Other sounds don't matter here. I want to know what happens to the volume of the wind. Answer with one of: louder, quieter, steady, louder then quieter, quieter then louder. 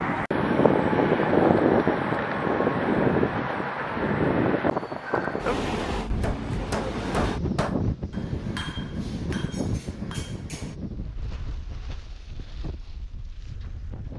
quieter.